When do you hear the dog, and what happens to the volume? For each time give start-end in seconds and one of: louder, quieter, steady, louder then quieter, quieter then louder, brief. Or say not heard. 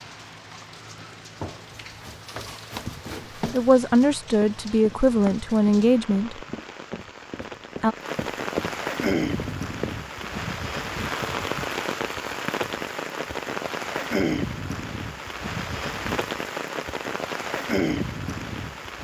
not heard.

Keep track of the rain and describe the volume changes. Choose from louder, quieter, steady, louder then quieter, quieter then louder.
louder.